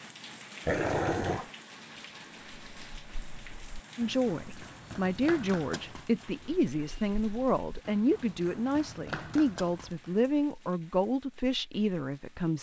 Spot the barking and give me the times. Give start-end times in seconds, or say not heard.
0.7-1.5.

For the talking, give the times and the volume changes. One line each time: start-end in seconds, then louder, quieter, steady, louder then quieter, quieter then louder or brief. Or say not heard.
4.0-12.5 steady.